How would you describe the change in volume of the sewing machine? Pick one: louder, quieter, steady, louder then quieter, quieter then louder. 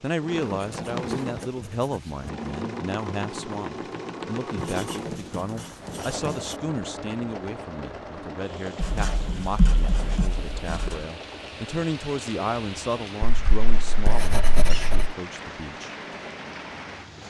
quieter.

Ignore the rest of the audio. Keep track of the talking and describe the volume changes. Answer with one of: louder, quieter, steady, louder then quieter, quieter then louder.
steady.